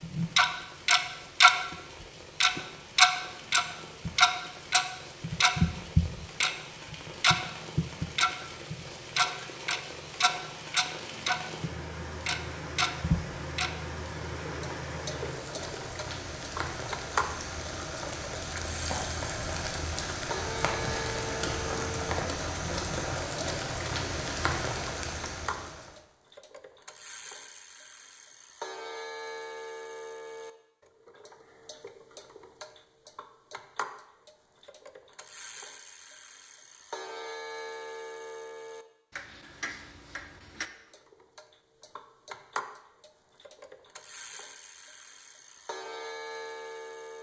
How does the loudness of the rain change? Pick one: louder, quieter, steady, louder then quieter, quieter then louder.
louder.